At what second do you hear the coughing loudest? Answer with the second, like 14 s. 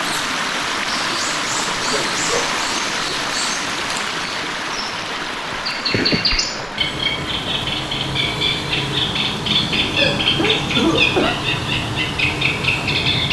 11 s.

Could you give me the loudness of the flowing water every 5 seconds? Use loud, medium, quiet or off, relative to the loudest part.
loud, medium, medium.